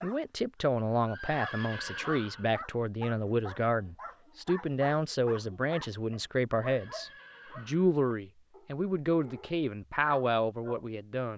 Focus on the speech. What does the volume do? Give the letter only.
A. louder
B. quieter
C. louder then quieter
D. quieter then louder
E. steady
E.